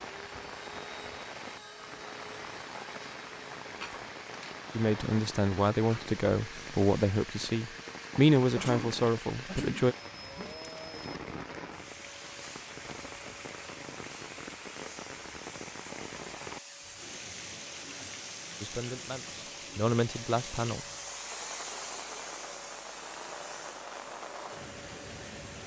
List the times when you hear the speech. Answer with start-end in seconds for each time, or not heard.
4.8-9.9, 18.6-20.8.